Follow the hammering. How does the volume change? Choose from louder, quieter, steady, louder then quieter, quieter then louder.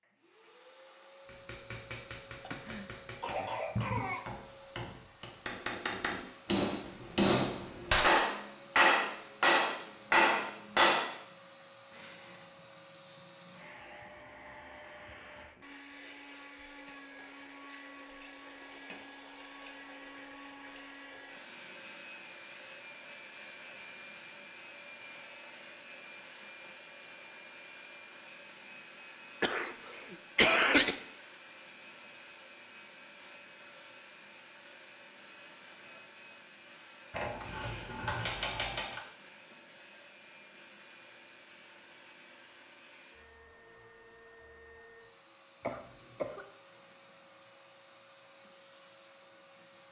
louder.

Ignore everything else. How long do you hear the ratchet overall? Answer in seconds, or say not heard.
2 s.